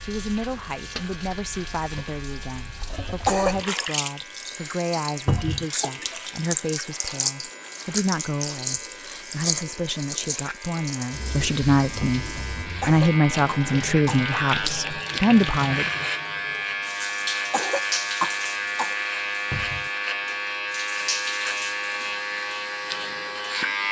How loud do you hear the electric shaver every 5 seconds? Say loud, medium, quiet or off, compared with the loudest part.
quiet, quiet, medium, loud, loud.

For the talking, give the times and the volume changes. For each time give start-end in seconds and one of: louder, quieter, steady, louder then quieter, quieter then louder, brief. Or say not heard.
0.0-15.9 louder.